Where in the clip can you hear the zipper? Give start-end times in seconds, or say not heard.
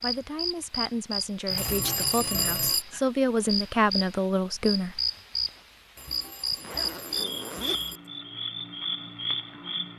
1.5-2.8, 6.5-8.0.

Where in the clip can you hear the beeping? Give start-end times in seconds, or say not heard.
1.6-2.9, 6.0-8.0.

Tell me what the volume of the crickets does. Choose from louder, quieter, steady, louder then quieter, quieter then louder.
steady.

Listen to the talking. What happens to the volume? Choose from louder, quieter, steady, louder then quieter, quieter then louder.
louder.